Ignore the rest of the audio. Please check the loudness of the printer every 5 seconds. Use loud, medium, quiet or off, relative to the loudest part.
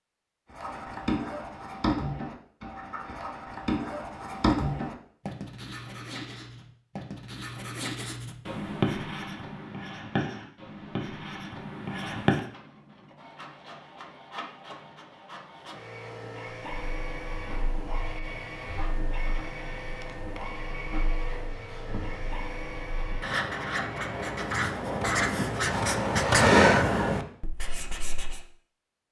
off, off, medium, loud, loud, off.